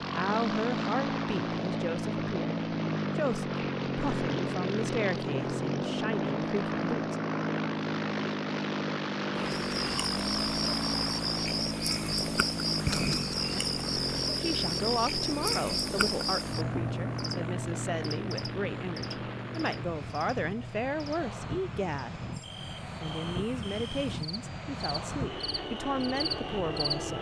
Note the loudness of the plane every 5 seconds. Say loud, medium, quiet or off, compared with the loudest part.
loud, loud, loud, medium, medium, medium.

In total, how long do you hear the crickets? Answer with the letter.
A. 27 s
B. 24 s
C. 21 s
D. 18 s
D.